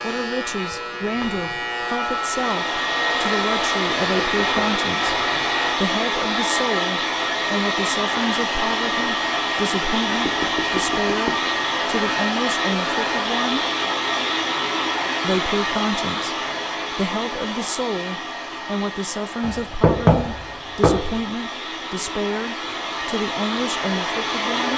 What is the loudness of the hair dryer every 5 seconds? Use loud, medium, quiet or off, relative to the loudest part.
loud, loud, loud, medium, medium.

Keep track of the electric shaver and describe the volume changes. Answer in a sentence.
The volume of the electric shaver stays about the same.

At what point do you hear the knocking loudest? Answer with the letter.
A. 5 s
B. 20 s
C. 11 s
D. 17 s
B.